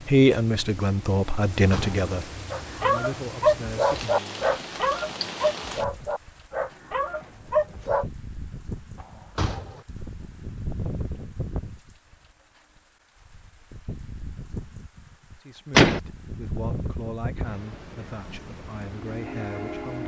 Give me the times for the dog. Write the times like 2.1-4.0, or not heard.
2.5-8.1.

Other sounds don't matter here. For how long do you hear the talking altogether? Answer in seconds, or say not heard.
9 s.